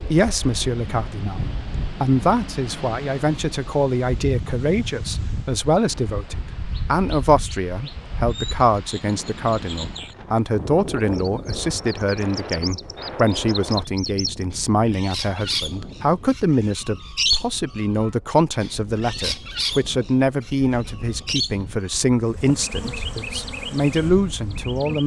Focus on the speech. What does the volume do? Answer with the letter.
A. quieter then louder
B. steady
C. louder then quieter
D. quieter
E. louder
B.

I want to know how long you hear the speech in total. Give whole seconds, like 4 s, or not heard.
25 s.